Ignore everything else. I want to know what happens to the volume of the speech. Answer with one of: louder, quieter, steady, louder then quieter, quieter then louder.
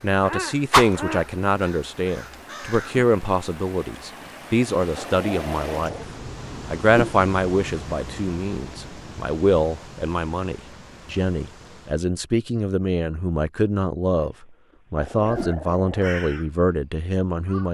steady.